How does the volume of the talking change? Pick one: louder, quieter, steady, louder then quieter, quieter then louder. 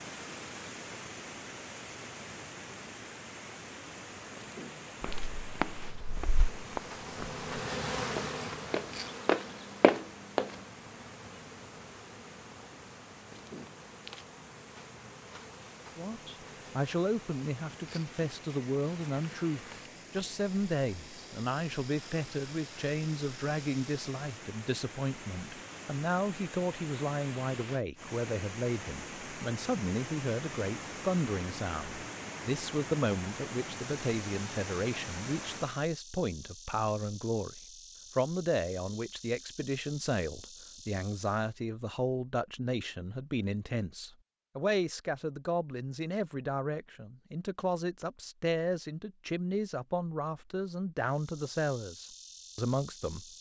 steady.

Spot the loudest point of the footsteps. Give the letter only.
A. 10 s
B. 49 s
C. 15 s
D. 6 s
A.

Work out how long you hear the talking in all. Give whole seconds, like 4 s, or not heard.
37 s.